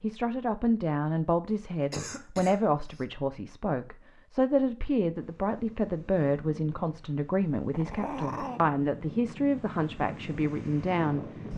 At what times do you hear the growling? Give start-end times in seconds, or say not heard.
7.7-8.6.